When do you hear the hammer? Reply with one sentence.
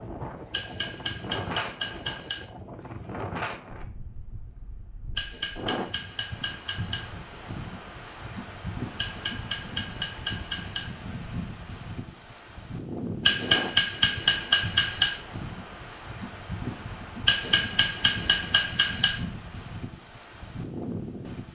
You can hear the hammer from 0.5 to 2.5 s, from 5.2 to 7.1 s, from 8.9 to 10.9 s, from 13.2 to 15.2 s and from 17.2 to 19.2 s.